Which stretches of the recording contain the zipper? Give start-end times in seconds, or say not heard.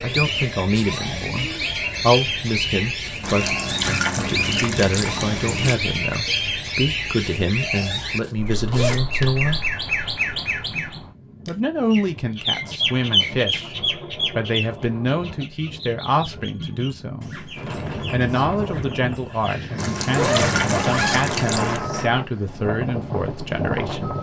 8.2-9.4, 19.9-21.4.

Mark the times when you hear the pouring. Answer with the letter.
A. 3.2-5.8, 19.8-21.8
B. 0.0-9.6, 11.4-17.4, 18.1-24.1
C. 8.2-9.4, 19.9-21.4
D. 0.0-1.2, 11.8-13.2
A.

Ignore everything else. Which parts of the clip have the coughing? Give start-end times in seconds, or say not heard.
not heard.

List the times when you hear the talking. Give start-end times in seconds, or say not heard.
0.0-9.6, 11.4-17.4, 18.1-24.1.